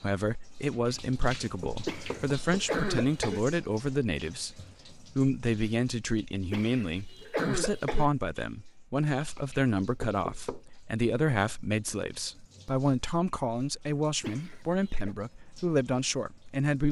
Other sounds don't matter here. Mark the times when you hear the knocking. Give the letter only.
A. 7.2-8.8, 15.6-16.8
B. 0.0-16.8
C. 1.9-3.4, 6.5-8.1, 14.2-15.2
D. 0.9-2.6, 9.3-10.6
D.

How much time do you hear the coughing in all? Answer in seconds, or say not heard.
4 s.